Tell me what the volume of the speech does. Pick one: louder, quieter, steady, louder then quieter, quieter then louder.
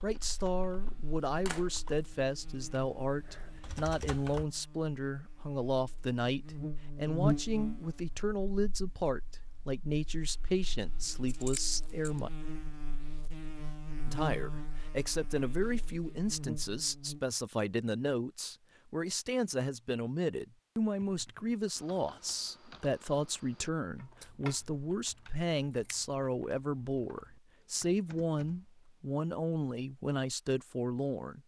steady.